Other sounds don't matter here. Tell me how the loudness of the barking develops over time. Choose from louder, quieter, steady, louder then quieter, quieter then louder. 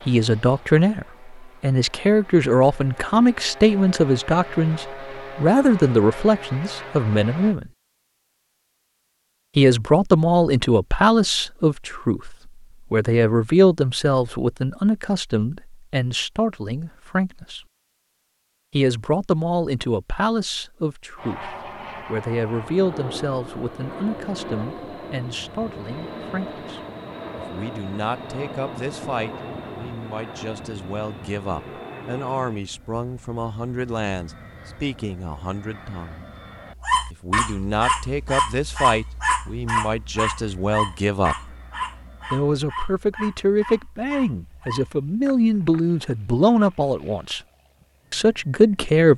quieter.